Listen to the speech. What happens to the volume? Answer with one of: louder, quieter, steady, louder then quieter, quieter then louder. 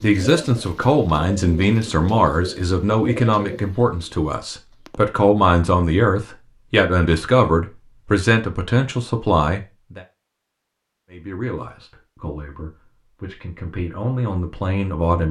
quieter.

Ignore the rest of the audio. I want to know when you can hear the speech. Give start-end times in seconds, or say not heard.
0.0-10.0, 11.1-15.2.